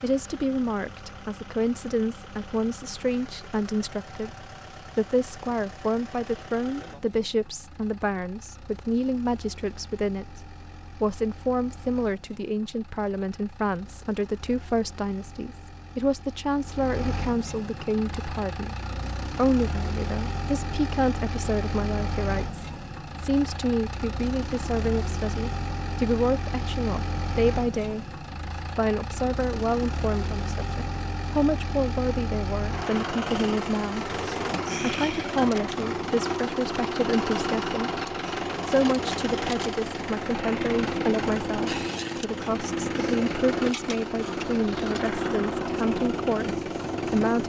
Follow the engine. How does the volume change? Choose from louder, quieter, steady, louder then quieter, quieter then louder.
louder.